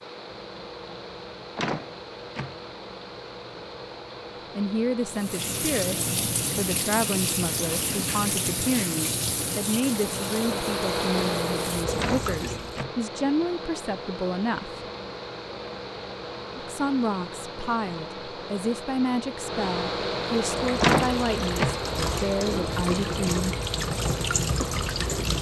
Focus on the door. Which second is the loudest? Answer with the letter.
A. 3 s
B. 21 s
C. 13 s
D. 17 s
B.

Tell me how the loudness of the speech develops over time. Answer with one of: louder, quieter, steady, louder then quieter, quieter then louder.
steady.